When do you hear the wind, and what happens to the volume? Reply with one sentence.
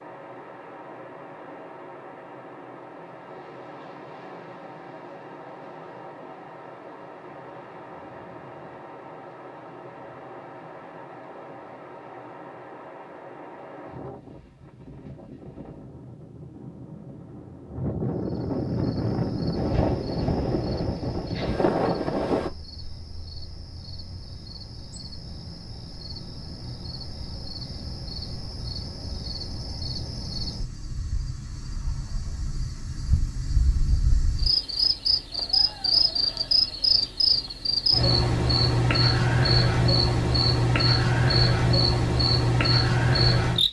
The wind can be heard from 0.0 to 22.5 s, getting louder.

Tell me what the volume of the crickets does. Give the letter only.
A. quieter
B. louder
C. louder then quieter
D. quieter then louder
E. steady
B.